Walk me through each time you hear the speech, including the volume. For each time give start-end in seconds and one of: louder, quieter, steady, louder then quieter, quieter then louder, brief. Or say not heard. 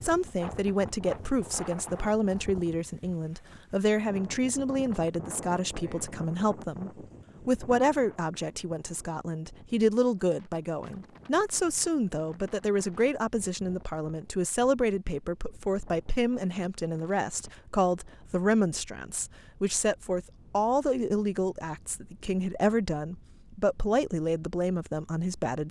0.0-25.6 steady.